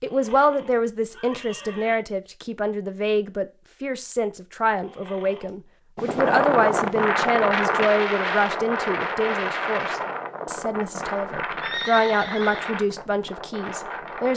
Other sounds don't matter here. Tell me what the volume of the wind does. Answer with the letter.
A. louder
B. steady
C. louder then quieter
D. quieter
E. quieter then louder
D.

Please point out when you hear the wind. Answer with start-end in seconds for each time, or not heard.
6.0-14.3.